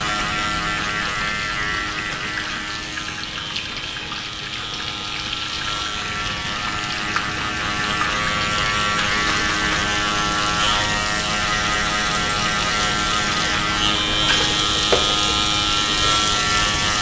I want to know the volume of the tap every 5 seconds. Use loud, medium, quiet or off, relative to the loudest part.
medium, loud, loud, loud.